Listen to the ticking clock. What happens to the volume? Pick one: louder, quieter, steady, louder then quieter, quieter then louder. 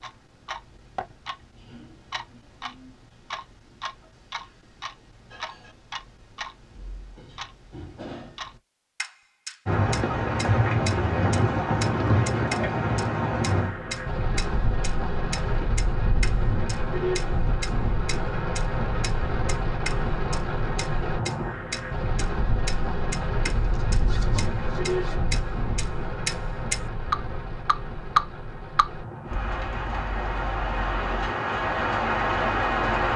louder.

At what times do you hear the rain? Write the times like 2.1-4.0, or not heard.
9.7-33.1.